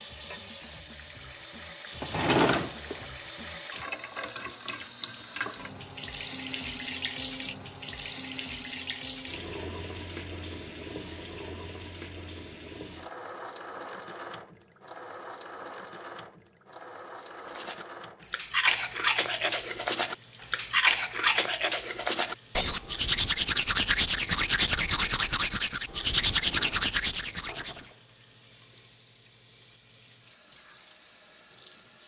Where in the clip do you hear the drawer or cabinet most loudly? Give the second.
2 s.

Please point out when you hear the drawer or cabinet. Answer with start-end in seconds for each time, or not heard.
2.0-3.1, 26.3-28.0.